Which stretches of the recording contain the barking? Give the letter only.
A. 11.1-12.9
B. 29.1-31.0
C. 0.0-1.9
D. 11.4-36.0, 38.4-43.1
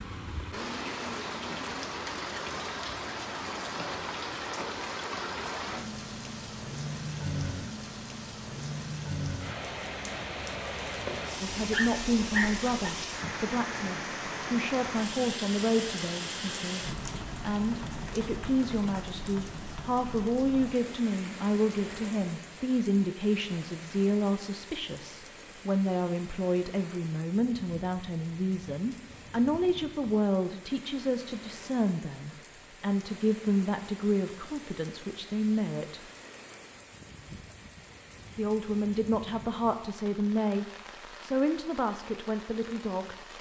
A.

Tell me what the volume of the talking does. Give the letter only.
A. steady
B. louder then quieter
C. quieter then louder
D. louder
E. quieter
A.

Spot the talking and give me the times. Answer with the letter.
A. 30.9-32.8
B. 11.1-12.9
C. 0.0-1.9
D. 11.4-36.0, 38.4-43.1
D.